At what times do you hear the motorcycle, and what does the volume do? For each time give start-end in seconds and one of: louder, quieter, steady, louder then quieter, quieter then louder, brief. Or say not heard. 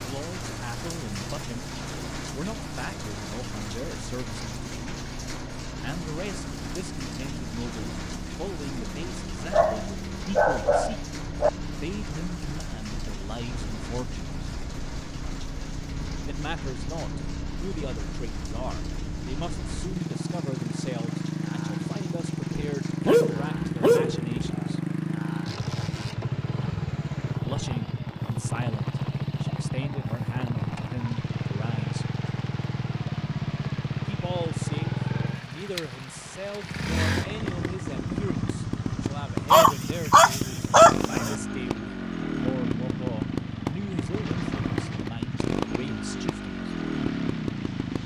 0.0-48.0 louder.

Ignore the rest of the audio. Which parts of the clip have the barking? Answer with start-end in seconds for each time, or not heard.
9.5-11.5, 22.5-24.7, 39.5-41.4.